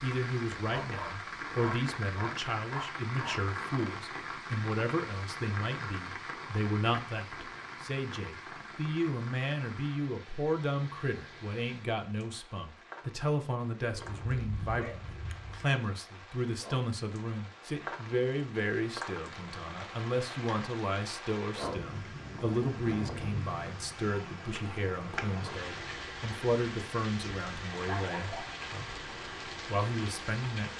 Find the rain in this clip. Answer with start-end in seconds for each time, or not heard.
0.0-30.7.